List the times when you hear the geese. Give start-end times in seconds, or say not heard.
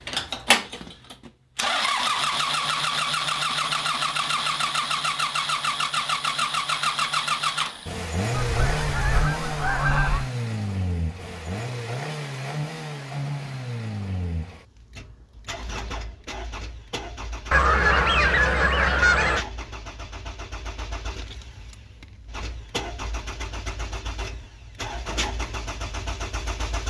8.3-10.3, 17.5-19.4.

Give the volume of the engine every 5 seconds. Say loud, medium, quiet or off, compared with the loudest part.
loud, loud, medium, quiet, quiet, medium.